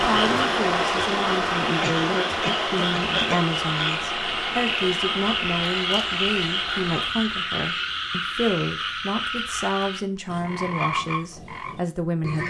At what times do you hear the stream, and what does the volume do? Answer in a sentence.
You can hear the stream from 0.0 to 7.1 s, getting quieter.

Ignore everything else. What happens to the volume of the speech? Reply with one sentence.
The volume of the speech stays about the same.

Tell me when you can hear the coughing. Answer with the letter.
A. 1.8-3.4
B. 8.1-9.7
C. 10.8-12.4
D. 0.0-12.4
A.